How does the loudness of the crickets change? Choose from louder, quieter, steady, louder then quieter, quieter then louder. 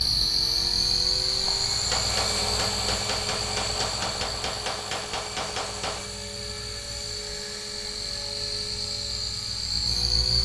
quieter then louder.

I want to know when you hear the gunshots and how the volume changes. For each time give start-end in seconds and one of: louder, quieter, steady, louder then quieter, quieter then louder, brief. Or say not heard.
1.4-6.0 steady.